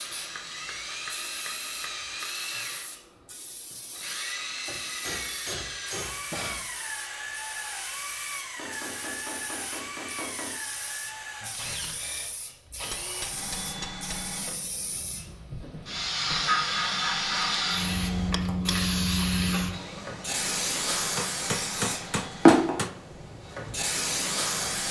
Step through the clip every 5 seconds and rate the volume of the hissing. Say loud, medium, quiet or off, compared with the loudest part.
quiet, quiet, quiet, loud, loud.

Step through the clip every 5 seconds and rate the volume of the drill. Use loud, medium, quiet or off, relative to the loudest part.
loud, loud, loud, medium, medium.